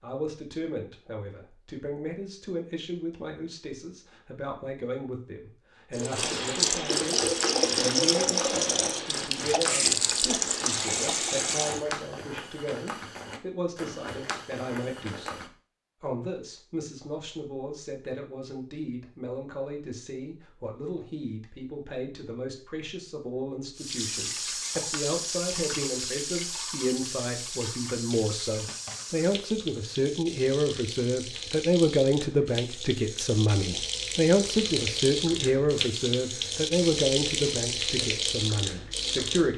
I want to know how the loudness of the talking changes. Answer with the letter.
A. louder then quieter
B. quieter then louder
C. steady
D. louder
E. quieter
D.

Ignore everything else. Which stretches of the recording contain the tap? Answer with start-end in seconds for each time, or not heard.
5.9-11.8, 23.8-39.5.